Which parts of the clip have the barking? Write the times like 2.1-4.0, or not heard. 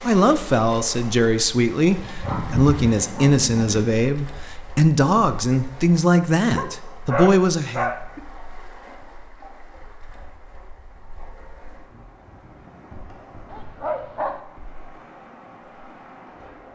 2.0-3.9, 6.5-8.2, 13.5-14.4.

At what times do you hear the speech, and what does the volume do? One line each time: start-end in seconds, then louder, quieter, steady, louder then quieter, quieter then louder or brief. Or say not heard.
0.1-7.9 steady.